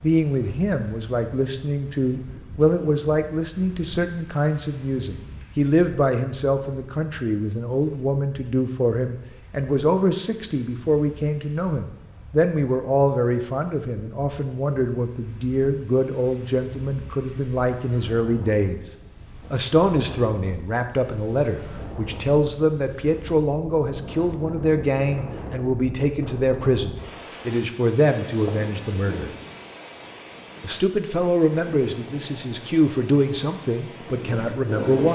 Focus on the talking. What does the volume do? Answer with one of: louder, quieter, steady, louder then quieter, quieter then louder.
steady.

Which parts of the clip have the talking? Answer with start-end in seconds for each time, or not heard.
0.0-18.8, 19.5-29.3, 30.6-35.1.